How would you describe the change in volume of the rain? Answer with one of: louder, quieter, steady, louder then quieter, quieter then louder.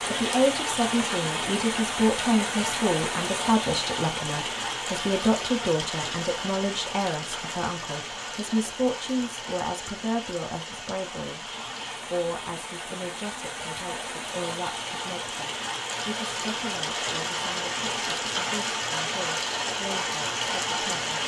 quieter then louder.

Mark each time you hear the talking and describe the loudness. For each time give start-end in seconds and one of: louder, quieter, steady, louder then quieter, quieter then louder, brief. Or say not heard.
0.1-21.2 quieter.